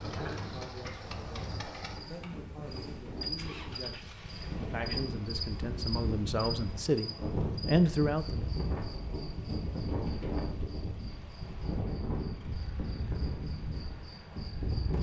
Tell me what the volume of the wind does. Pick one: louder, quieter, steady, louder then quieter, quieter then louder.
louder.